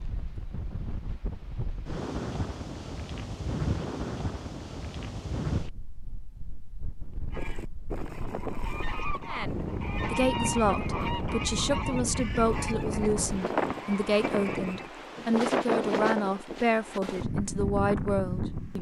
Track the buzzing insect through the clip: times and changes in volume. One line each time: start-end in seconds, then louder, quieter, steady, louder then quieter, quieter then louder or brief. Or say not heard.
not heard.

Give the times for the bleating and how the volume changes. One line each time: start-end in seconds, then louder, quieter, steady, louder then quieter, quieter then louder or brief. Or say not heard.
not heard.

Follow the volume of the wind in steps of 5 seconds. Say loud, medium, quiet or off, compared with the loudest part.
medium, medium, loud, loud.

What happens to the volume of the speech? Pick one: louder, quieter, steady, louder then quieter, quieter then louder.
steady.